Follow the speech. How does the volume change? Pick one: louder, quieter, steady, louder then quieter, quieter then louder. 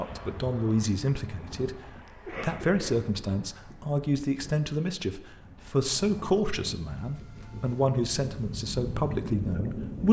steady.